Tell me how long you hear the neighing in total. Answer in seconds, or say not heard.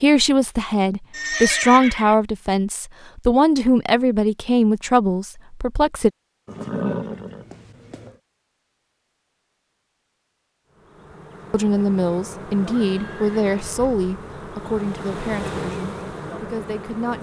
4 s.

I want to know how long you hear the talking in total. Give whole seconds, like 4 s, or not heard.
12 s.